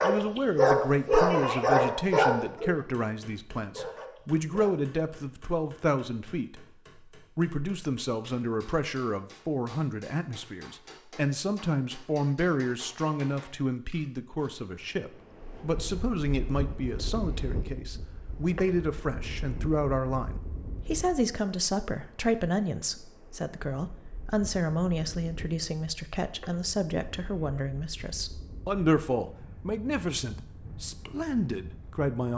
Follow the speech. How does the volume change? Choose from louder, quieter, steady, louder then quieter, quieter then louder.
steady.